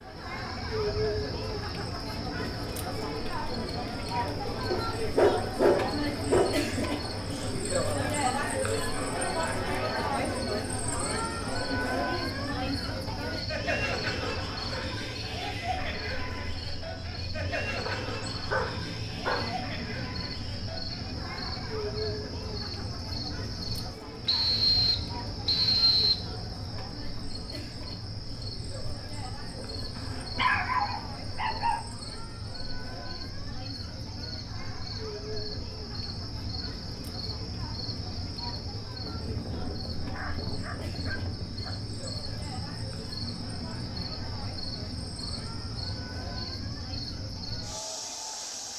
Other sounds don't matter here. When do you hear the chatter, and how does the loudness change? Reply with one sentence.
The chatter can be heard from 0.0 to 48.7 s, getting quieter.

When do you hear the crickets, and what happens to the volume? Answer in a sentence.
The crickets can be heard from 0.0 to 48.7 s, at a steady volume.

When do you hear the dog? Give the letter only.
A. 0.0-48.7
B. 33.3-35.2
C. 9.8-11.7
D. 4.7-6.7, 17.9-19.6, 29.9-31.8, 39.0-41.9
D.